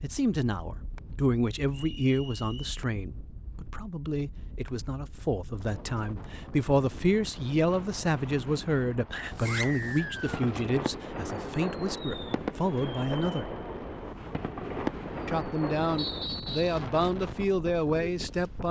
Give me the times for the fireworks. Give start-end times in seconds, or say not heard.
9.2-16.3.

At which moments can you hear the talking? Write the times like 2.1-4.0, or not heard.
0.0-13.6, 15.2-18.6.